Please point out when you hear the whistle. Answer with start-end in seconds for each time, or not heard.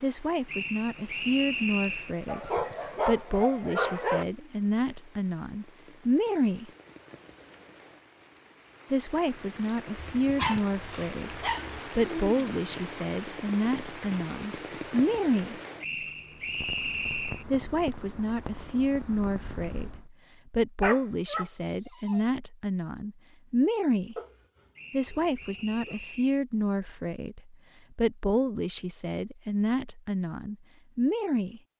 0.5-2.1, 15.8-17.4, 24.8-26.4.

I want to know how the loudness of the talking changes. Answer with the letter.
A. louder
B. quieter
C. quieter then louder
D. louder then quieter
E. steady
E.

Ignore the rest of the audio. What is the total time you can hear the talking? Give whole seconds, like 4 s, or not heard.
27 s.